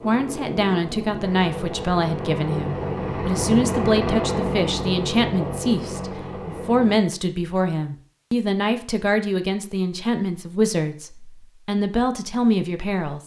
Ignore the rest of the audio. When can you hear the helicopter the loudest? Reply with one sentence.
The loudest moment of the helicopter is at 4 seconds.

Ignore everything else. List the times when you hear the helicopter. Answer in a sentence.
You can hear the helicopter from 0.0 to 7.0 s.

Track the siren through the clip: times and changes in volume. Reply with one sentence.
The siren can't be heard in this clip.